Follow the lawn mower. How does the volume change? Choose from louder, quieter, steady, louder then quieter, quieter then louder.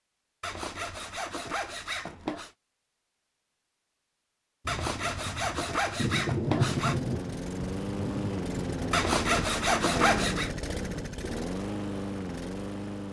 steady.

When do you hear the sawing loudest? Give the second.
10 s.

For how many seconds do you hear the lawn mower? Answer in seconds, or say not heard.
6 s.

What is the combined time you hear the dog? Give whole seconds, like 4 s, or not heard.
not heard.